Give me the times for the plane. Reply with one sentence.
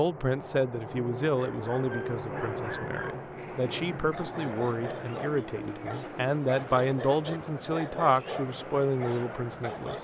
You can hear the plane from 0.0 to 9.9 s.